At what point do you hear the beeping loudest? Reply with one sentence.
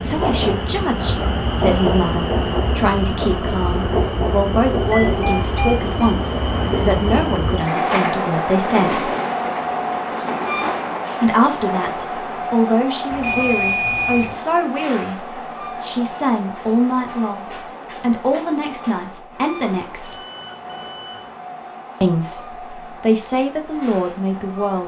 The loudest moment of the beeping is at 14 seconds.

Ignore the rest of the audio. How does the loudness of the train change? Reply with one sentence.
The loudness of the train goes down.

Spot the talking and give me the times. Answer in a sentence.
You can hear the talking from 0.0 to 9.1 s, from 11.2 to 20.1 s and from 22.0 to 24.8 s.